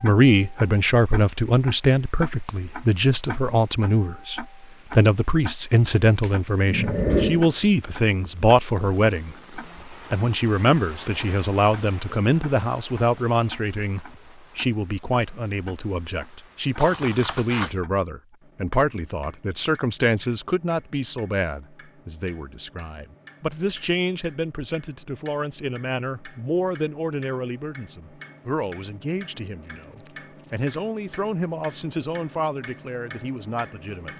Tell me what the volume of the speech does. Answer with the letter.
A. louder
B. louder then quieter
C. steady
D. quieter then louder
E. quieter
E.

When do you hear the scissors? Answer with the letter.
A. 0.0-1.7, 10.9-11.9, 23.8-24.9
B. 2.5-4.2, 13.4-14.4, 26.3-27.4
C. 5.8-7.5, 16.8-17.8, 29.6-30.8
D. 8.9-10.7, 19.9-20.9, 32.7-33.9
C.